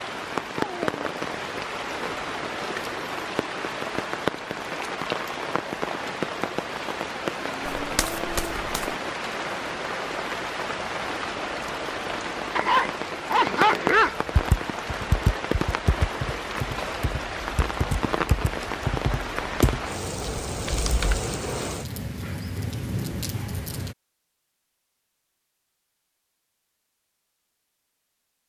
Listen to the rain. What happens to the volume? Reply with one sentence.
The loudness of the rain stays about the same.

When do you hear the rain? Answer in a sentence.
The rain can be heard from 0.0 to 23.9 s.